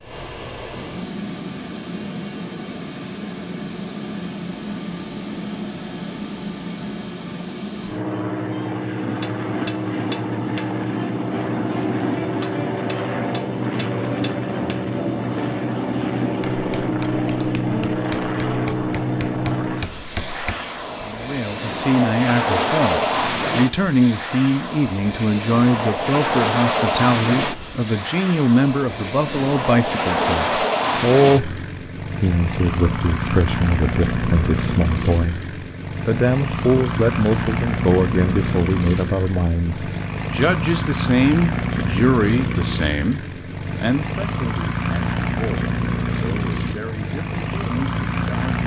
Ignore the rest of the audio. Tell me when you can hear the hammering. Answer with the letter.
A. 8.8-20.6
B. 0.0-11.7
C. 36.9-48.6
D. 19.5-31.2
A.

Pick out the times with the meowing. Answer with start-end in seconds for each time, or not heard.
not heard.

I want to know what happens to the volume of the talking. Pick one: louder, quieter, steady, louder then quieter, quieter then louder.
quieter.